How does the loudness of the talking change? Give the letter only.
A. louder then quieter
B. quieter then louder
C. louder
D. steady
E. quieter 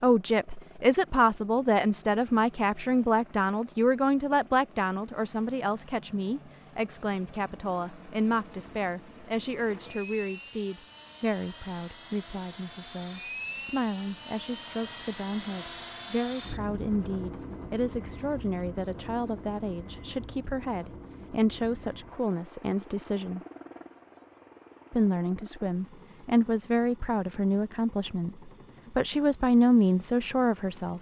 B.